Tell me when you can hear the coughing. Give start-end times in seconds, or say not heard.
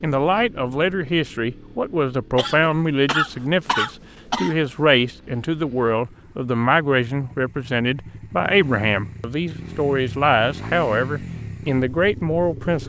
2.4-4.7.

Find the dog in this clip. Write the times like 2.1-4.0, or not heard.
not heard.